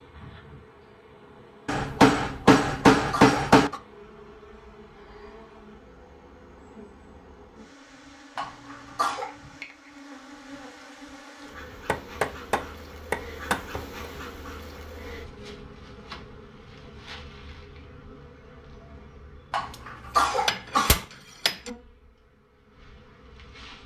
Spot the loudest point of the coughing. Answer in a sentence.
The loudest moment of the coughing is at 20 seconds.